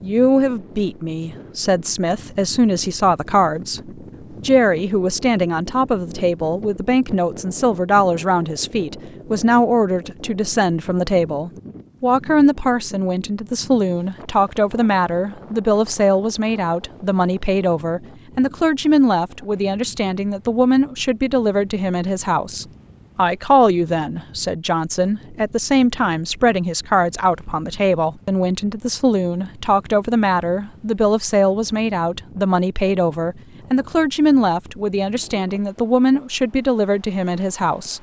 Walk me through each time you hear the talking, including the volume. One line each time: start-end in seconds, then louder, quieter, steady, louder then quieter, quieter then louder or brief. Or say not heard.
0.0-37.9 steady.